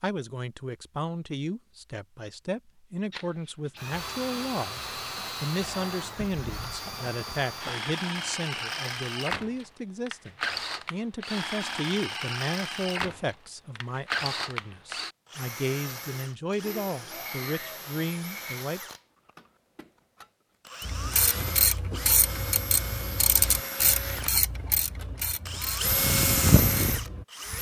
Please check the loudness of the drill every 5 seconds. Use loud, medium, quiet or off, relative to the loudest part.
medium, medium, medium, quiet, medium, loud.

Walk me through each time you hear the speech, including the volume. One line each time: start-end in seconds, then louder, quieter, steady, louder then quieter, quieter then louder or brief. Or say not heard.
0.0-18.8 steady.